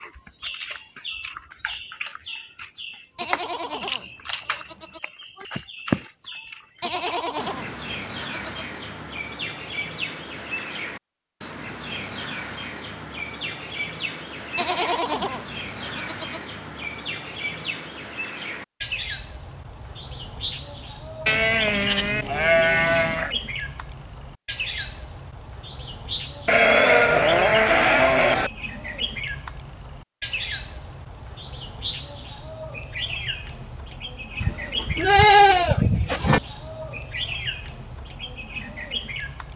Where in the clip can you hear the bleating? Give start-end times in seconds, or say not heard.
3.1-5.0, 6.8-8.7, 14.6-16.4, 21.2-23.4, 26.4-28.5, 34.4-36.4.